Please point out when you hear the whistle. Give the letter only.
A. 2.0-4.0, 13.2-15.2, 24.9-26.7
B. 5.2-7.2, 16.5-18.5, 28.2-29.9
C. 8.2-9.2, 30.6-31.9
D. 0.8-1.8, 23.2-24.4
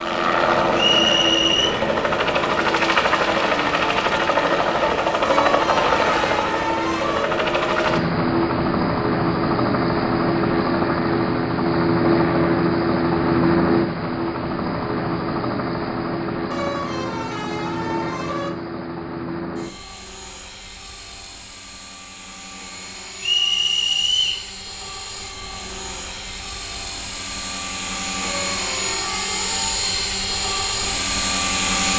D.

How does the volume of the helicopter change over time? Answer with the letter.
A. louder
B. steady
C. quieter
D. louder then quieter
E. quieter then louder
E.